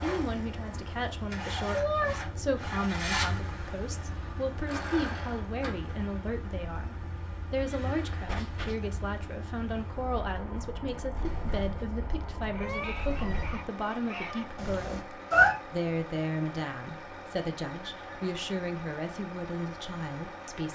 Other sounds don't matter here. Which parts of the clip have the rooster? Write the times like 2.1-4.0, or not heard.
12.5-14.5.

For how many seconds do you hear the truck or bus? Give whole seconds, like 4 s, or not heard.
21 s.